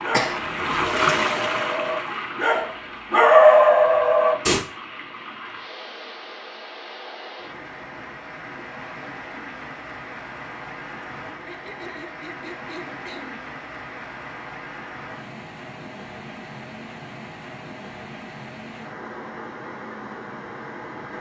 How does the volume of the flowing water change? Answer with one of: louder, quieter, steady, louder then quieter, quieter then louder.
quieter.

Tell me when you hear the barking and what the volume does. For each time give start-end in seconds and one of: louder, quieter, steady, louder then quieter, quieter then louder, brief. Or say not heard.
0.0-4.6 louder.